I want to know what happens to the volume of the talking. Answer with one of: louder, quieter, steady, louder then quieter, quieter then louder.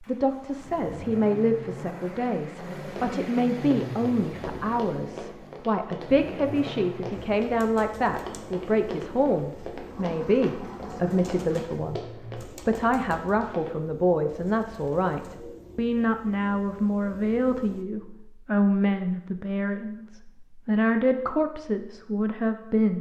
steady.